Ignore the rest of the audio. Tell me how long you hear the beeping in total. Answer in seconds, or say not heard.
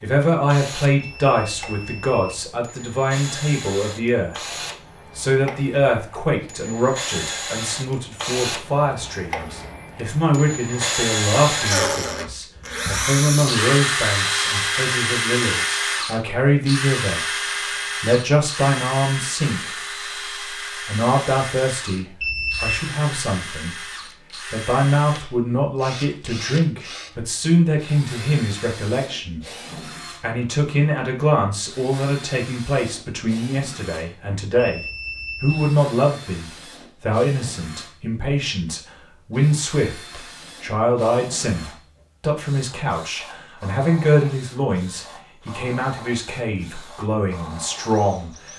3 s.